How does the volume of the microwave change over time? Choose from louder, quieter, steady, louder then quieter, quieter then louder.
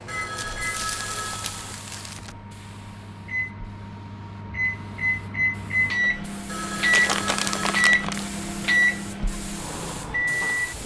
louder.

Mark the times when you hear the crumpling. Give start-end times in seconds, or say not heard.
0.3-2.4, 6.9-8.2.